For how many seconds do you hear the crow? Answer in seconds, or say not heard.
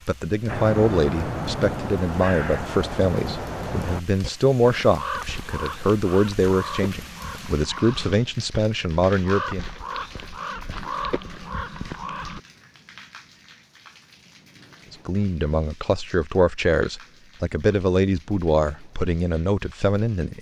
12 s.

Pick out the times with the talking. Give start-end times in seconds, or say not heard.
0.1-9.7, 14.9-20.3.